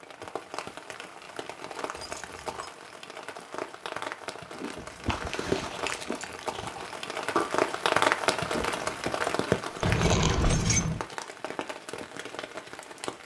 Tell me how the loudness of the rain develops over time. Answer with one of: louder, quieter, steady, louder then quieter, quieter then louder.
louder then quieter.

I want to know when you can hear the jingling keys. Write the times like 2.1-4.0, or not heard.
1.9-2.7, 4.9-6.5, 9.8-11.1.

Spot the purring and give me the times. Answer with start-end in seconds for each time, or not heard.
not heard.